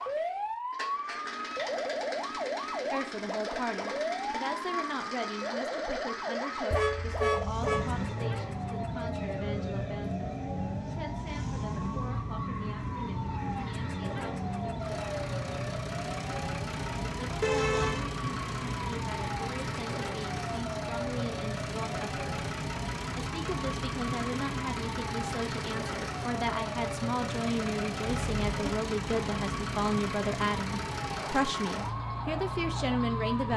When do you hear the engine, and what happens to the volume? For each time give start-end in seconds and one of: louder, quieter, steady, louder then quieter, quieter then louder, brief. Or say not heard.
0.0-33.5 steady.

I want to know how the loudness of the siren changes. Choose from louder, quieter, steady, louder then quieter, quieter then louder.
steady.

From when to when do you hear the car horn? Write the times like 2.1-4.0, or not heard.
6.7-8.1, 17.4-18.1, 28.1-28.7.